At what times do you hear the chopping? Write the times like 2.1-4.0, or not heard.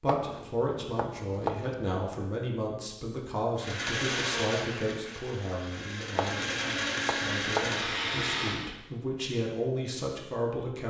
0.1-1.9, 6.2-8.6.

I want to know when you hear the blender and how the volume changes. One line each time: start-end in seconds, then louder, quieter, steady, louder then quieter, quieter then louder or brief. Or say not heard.
3.5-8.7 quieter then louder.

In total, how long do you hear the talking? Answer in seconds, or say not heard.
11 s.